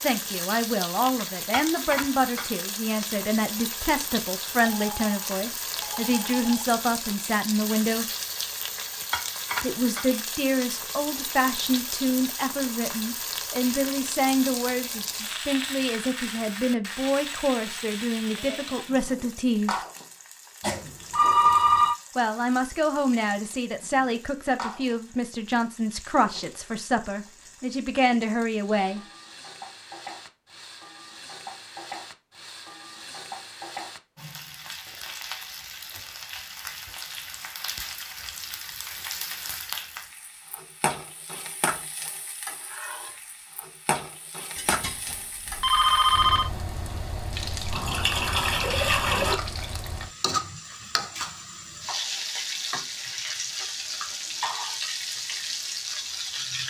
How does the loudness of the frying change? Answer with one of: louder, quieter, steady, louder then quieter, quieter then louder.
quieter then louder.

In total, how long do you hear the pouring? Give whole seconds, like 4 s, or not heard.
2 s.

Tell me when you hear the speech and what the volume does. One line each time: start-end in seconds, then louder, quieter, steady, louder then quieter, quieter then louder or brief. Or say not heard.
0.0-8.1 steady
9.6-19.9 steady
22.1-29.0 steady.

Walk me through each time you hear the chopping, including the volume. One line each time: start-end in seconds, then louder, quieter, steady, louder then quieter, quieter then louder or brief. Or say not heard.
not heard.